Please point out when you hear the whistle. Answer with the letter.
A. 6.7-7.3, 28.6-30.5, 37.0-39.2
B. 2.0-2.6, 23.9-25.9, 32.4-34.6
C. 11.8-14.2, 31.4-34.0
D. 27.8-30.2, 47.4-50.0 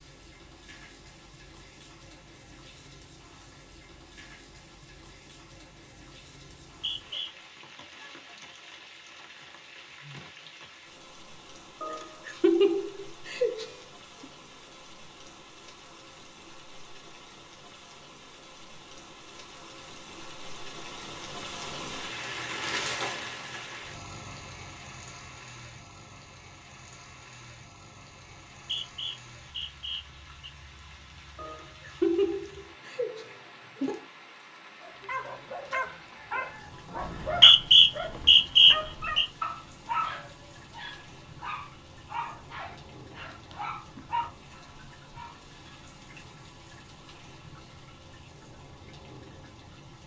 A.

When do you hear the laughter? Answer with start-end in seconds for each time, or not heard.
11.8-14.2, 31.4-34.0.